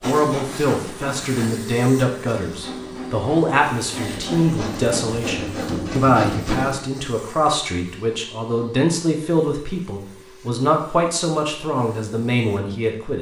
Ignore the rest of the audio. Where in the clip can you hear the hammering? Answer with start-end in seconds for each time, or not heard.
not heard.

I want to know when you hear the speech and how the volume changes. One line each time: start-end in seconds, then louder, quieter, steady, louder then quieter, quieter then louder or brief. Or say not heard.
0.1-13.1 steady.